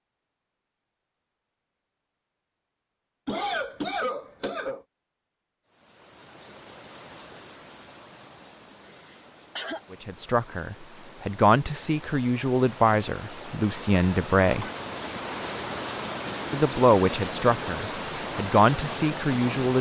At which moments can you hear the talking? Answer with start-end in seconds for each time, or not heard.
9.9-14.7, 16.5-19.7.